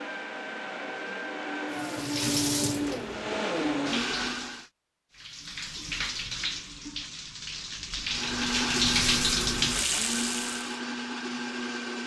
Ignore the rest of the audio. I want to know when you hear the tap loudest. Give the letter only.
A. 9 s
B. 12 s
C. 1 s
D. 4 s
A.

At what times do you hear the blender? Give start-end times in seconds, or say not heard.
0.0-4.7, 8.1-12.0.